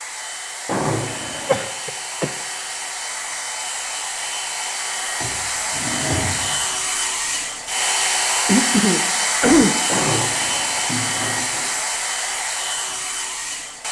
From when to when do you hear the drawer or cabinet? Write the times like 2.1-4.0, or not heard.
0.7-1.6, 5.2-6.7, 9.8-11.7.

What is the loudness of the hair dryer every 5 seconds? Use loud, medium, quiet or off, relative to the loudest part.
medium, loud, loud.